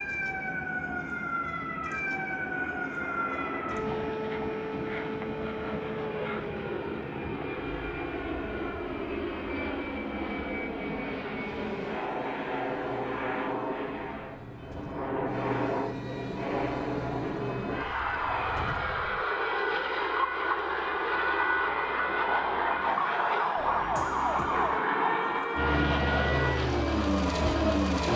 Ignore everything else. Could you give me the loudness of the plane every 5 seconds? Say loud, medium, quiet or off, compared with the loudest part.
medium, medium, medium, loud, loud, loud.